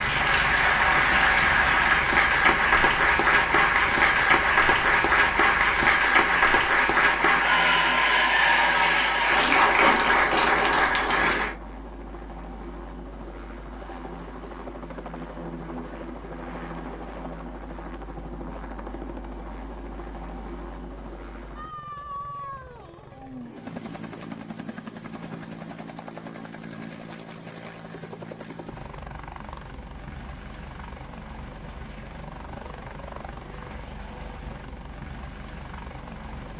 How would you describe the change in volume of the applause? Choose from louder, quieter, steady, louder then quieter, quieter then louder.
steady.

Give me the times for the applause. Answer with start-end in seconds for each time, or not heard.
0.0-11.6.